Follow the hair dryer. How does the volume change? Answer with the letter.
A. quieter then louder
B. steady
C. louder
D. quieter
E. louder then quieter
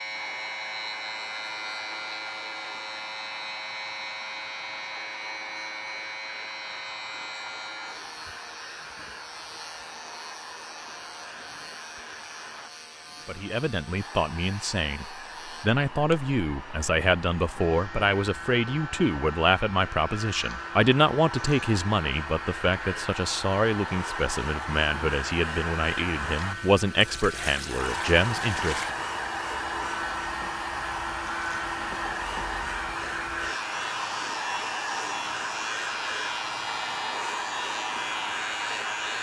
C.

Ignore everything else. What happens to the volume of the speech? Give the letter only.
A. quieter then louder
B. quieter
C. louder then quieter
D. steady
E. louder
D.